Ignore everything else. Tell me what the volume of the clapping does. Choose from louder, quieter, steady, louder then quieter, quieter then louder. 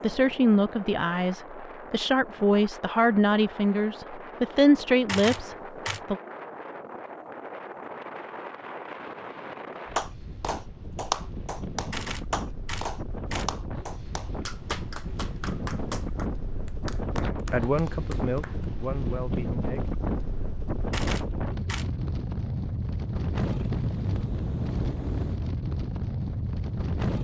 quieter.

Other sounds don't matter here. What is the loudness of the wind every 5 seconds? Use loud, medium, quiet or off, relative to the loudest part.
medium, medium, medium, loud, loud, loud.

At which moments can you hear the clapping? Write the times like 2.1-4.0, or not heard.
9.9-18.7.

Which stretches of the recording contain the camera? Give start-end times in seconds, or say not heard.
5.0-6.0, 11.9-13.6, 20.9-21.9.